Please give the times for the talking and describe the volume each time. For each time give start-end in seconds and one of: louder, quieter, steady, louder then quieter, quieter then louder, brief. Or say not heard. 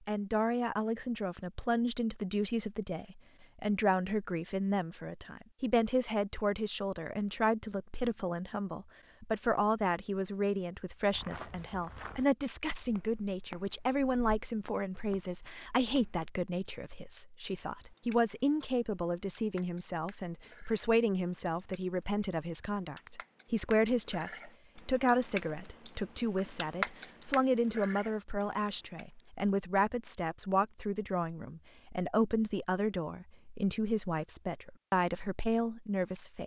0.1-36.4 steady.